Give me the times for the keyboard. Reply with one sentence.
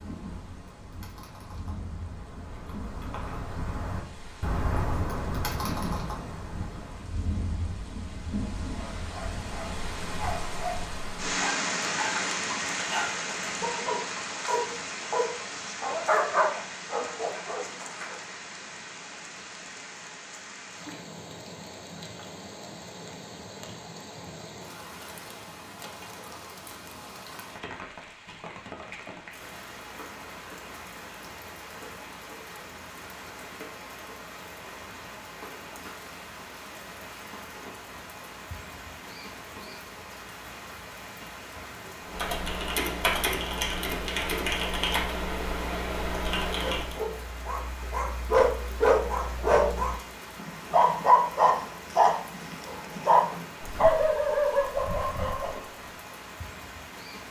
The keyboard can be heard from 0.0 to 7.2 s and from 42.0 to 47.0 s.